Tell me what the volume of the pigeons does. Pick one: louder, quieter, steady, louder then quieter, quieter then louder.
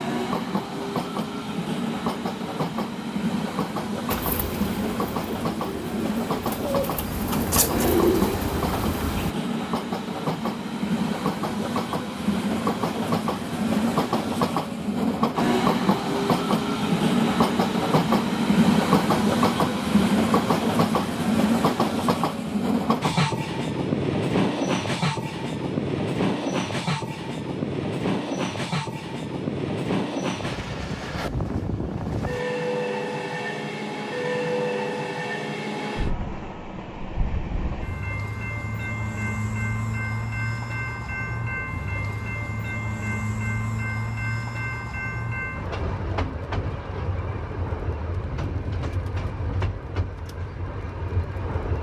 louder.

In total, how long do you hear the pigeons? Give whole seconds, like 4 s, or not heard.
5 s.